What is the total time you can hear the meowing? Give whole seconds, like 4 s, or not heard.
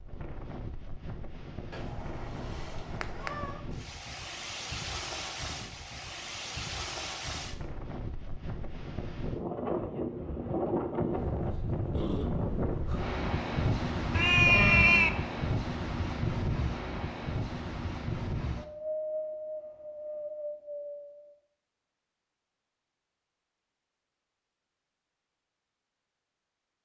3 s.